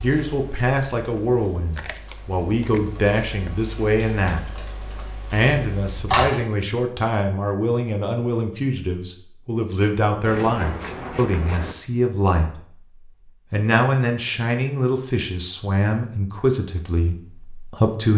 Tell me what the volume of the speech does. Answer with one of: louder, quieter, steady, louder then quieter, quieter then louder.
steady.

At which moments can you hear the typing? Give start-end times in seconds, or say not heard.
0.0-6.4.